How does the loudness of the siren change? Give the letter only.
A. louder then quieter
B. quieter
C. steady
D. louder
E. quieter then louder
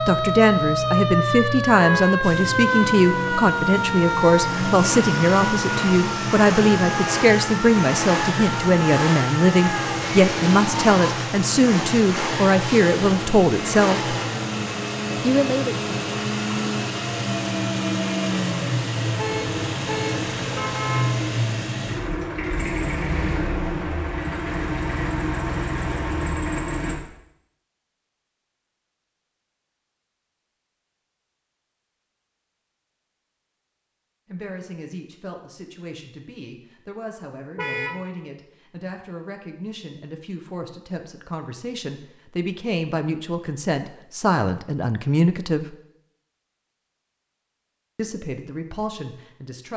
B.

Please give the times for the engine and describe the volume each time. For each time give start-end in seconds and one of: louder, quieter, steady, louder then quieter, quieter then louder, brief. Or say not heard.
2.2-26.9 steady.